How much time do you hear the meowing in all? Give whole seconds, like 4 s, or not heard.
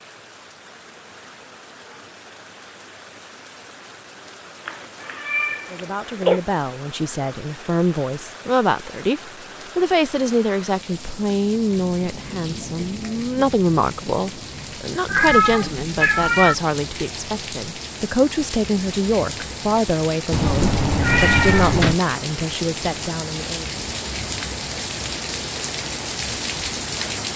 5 s.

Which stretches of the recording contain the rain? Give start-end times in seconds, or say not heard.
0.0-27.3.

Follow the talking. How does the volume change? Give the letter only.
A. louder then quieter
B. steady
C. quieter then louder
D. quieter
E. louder
B.